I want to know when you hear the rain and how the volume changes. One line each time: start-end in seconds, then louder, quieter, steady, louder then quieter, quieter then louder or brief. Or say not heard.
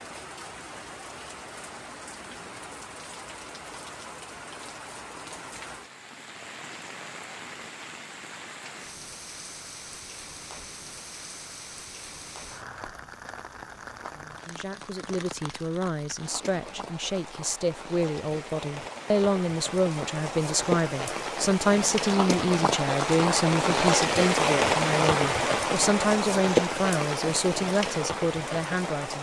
0.0-29.1 louder.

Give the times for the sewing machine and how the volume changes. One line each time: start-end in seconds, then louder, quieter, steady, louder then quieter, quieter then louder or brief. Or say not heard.
not heard.